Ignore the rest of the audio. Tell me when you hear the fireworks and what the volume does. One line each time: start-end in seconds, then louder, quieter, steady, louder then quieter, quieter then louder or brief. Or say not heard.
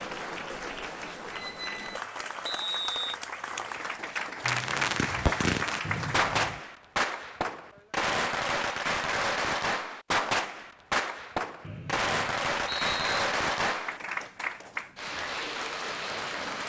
4.4-14.0 steady.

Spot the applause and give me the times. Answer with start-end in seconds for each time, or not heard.
0.0-6.3, 13.8-16.6.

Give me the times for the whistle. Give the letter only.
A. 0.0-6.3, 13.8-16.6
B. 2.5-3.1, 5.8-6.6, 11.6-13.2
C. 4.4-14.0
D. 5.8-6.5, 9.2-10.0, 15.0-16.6
B.